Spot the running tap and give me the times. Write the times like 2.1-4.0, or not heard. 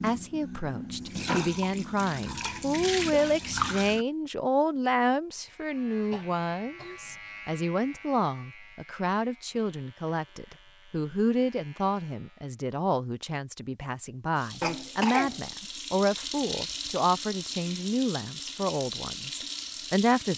0.0-4.0, 14.3-20.3.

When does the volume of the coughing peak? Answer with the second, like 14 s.
15 s.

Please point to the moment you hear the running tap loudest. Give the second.
3 s.